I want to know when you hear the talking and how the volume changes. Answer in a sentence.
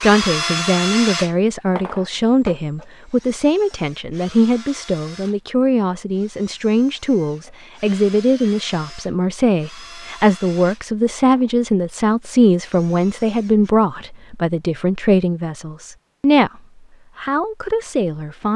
You can hear the talking from 0.0 to 18.5 s, at a steady volume.